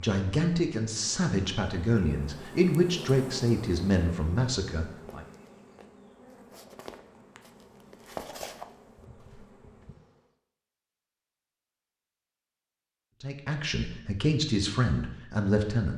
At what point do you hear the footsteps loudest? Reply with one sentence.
The loudest moment of the footsteps is at 8 seconds.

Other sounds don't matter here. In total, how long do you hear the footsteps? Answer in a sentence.
You can hear the footsteps for 5 seconds altogether.